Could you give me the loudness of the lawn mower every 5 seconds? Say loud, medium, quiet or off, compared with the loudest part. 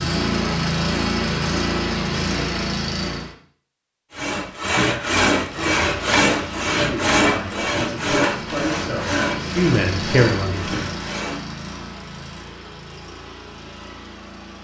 loud, medium, medium.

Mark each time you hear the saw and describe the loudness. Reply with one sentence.
The saw can be heard from 4.2 to 11.4 s, getting quieter.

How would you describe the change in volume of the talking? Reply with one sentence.
The volume of the talking goes up.